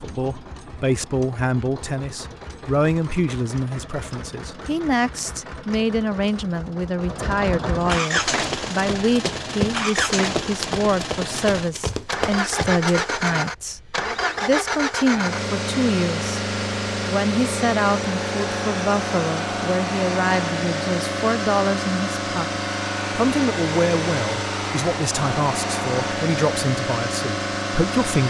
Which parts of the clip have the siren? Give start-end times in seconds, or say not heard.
not heard.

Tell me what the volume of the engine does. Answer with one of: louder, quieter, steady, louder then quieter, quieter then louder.
louder.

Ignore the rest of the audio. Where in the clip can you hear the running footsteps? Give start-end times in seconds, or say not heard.
8.1-13.2.